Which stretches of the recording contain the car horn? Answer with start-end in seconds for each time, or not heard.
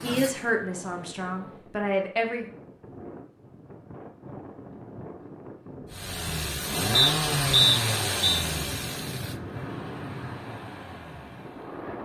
not heard.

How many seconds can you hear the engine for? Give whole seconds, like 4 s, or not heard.
8 s.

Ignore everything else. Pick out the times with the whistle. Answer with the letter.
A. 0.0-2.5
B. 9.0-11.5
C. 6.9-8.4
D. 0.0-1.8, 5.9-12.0
C.